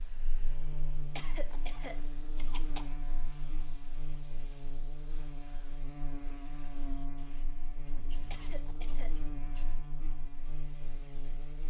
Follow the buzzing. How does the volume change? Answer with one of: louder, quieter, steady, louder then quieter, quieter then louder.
steady.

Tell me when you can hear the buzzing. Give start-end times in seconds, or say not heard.
0.0-11.6.